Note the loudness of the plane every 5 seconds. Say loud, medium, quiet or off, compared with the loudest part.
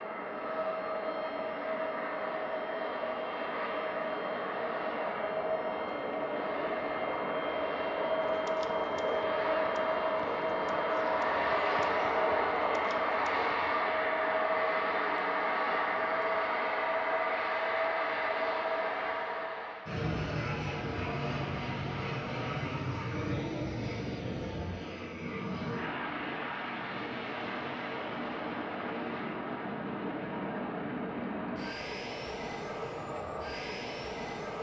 medium, loud, loud, loud, medium, medium, medium.